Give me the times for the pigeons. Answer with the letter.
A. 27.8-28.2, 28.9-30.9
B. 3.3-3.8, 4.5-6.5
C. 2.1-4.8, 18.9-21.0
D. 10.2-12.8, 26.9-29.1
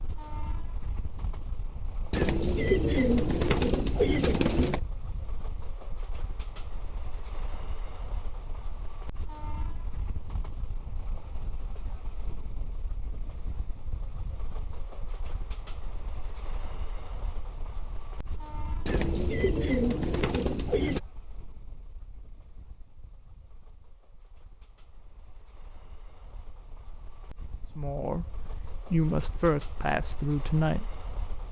C.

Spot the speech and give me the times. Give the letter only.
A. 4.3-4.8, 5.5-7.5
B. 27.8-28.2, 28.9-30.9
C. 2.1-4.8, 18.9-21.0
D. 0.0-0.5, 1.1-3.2
B.